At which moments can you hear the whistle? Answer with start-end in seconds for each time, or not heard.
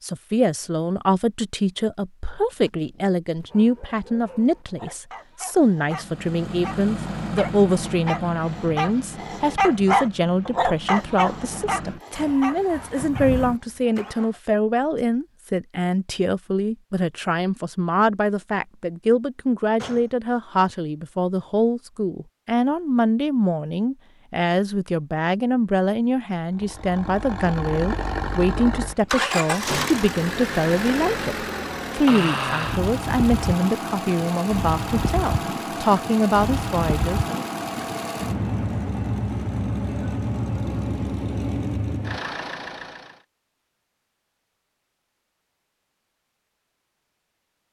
not heard.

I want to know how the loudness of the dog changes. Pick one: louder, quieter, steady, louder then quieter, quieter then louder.
louder then quieter.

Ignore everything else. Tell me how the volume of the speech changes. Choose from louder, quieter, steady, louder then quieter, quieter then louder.
steady.